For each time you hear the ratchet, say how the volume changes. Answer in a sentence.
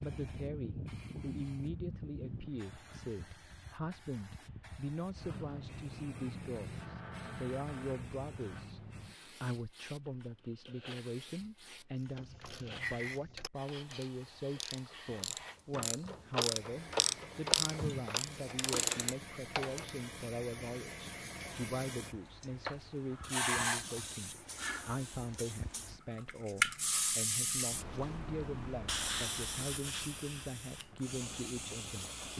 The ratchet can be heard from 12.0 to 19.9 s, getting louder.